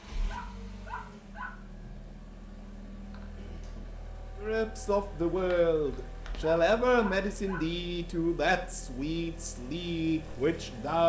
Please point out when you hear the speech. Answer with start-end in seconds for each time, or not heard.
4.4-11.0.